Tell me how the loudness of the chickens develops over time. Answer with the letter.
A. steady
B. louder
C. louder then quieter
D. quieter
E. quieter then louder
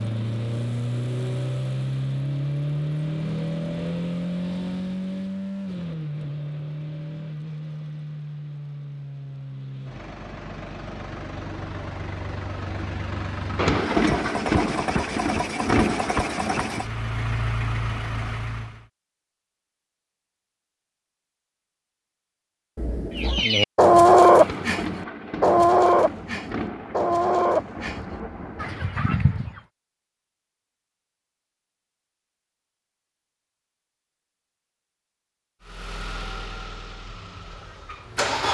D.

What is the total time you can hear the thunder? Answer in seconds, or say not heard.
8 s.